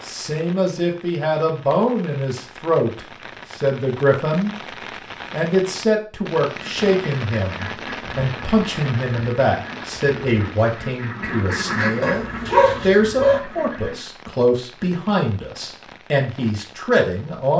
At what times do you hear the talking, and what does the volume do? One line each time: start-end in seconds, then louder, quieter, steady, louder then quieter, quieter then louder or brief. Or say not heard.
0.0-17.5 steady.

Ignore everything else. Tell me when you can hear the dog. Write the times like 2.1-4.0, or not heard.
12.0-13.4.